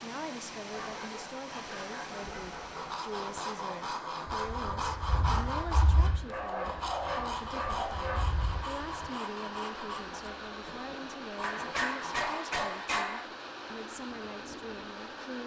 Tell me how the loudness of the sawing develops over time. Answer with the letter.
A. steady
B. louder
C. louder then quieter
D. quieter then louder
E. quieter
E.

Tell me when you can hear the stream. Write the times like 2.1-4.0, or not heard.
0.0-15.4.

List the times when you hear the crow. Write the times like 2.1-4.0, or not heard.
not heard.